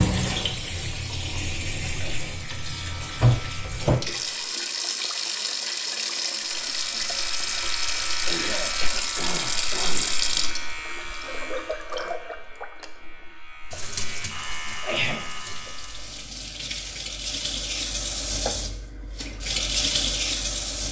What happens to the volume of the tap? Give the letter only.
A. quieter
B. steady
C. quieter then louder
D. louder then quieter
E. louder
C.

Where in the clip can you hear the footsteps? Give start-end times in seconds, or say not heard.
not heard.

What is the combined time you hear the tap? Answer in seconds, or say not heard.
21 s.